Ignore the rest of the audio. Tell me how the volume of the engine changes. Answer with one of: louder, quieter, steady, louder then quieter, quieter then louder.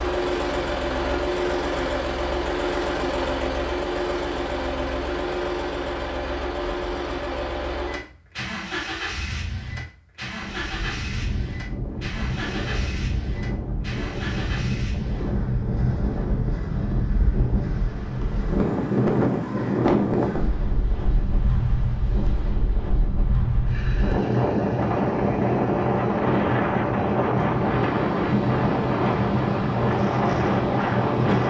quieter.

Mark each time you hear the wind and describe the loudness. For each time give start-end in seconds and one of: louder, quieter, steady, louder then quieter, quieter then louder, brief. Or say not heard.
10.4-31.4 louder.